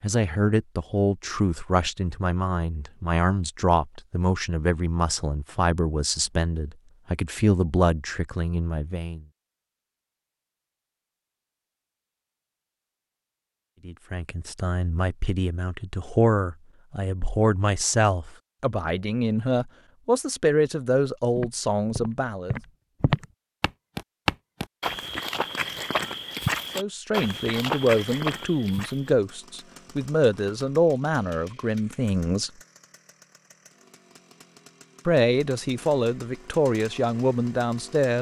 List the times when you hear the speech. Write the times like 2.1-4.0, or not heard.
0.0-9.2, 13.8-22.6, 26.8-32.5, 35.0-38.1.